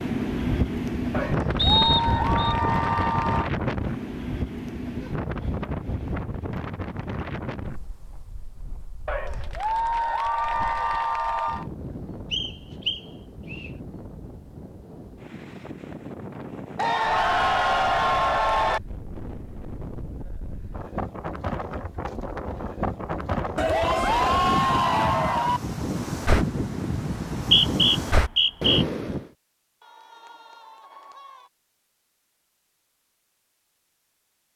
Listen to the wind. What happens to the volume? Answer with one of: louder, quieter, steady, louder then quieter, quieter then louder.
quieter then louder.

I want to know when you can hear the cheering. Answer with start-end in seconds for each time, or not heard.
1.1-3.5, 9.1-11.7, 16.8-18.8, 23.6-25.6, 29.8-31.5.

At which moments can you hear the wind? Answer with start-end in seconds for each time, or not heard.
0.0-29.3.